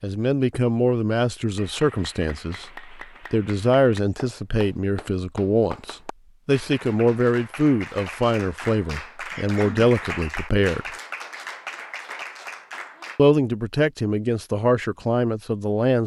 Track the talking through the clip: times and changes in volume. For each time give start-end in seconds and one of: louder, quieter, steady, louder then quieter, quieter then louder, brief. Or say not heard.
0.0-10.8 steady
13.2-16.0 brief.